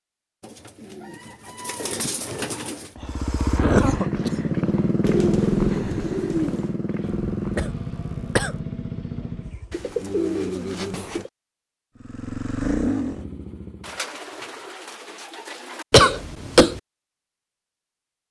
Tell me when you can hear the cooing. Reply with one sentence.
The cooing can be heard from 0.4 to 3.0 s, from 5.0 to 6.8 s, from 9.7 to 11.3 s and from 13.8 to 15.8 s.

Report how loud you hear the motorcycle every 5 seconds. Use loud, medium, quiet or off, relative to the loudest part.
loud, loud, loud, off.